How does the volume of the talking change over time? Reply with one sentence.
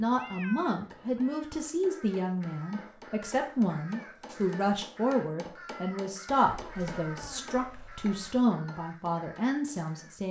The volume of the talking stays about the same.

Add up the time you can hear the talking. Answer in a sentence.
You can hear the talking for 10 seconds altogether.